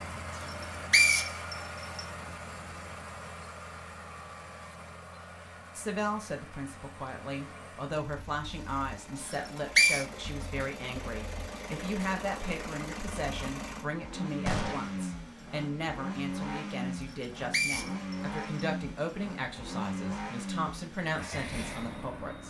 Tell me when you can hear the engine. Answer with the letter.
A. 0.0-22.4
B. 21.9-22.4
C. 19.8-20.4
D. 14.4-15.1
A.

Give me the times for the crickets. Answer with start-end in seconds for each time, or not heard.
not heard.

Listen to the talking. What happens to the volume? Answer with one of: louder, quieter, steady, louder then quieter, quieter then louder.
steady.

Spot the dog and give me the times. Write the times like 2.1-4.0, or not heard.
not heard.